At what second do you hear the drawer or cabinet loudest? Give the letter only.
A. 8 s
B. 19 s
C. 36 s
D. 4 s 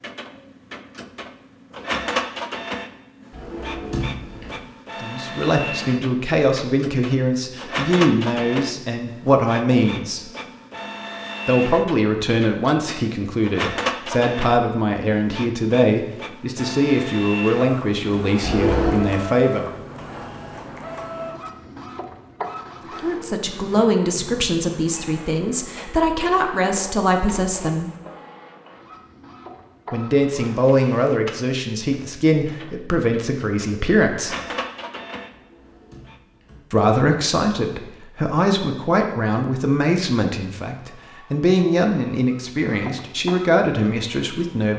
B.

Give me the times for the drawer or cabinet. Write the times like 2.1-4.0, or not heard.
3.3-4.5, 18.4-19.1, 35.3-36.6.